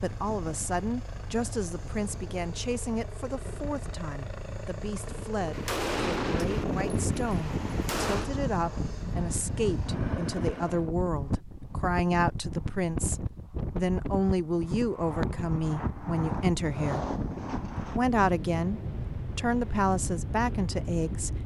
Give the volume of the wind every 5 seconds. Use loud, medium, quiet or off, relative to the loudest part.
quiet, loud, loud, loud, loud.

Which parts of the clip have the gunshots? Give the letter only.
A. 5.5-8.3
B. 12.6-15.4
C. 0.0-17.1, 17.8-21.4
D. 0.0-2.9
A.